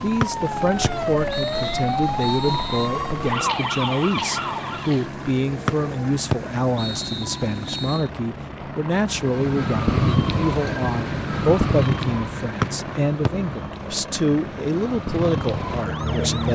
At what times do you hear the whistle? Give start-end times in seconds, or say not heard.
0.2-2.9, 5.7-8.1, 12.6-13.3.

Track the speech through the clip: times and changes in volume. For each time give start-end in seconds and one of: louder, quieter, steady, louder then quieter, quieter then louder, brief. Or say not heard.
0.0-16.5 steady.